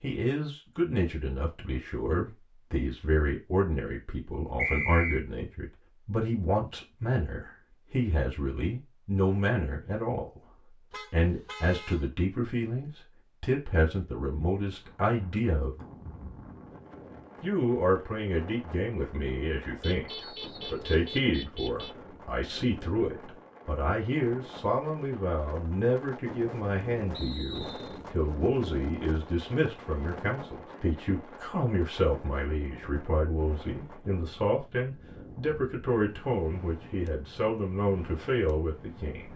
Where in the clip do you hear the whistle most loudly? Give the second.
5 s.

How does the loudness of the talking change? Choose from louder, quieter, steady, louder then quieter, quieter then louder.
steady.